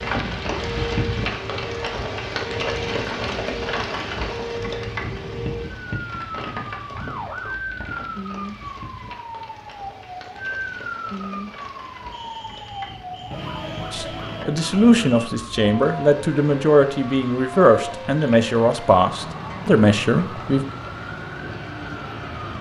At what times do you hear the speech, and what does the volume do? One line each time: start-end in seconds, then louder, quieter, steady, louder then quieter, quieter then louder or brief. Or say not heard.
13.9-20.6 steady.